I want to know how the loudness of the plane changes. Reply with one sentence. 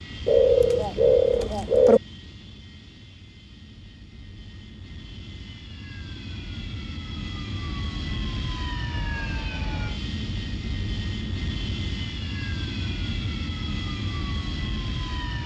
The volume of the plane goes up.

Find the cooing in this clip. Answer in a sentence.
The cooing can be heard from 0.2 to 2.0 s.